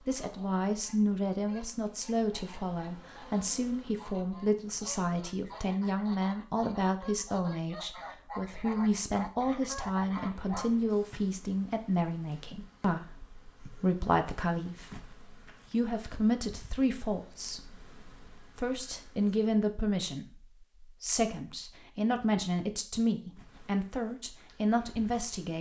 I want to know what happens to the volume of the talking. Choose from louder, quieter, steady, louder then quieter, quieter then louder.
steady.